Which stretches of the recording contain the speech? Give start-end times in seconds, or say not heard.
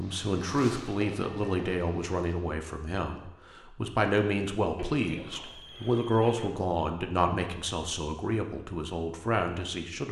0.0-10.0.